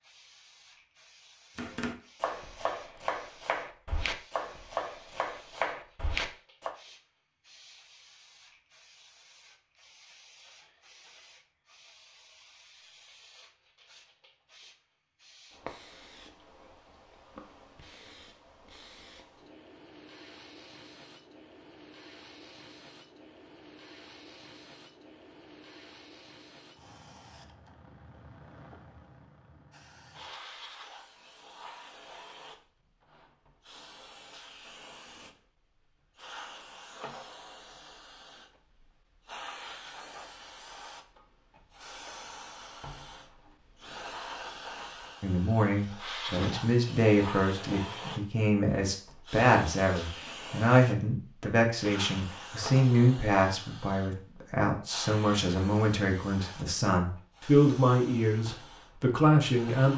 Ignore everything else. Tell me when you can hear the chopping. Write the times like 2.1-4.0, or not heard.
1.6-6.7.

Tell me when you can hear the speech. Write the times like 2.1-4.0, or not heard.
45.2-59.9.